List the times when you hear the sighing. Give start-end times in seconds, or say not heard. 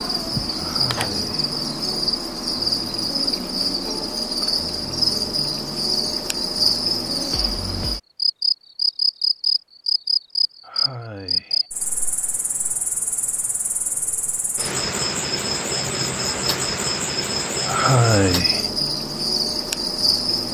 0.6-1.4, 10.6-11.7, 17.6-18.7.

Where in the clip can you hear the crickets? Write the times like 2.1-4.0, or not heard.
0.0-20.4.